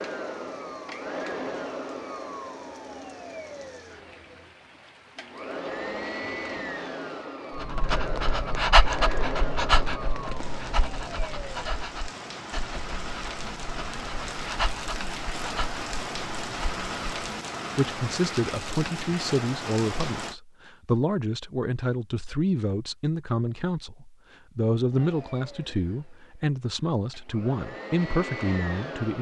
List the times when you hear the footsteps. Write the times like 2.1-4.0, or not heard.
not heard.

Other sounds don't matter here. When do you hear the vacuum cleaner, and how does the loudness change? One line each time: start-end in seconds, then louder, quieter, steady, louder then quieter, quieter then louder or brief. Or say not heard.
0.0-11.8 quieter then louder
24.9-29.1 quieter then louder.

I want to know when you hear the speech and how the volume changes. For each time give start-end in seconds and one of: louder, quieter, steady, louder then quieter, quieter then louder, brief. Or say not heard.
17.8-29.1 steady.